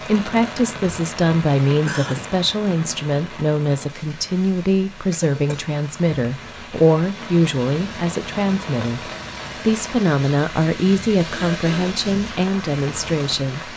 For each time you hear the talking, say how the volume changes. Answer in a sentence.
You can hear the talking from 0.0 to 13.7 s, at a steady volume.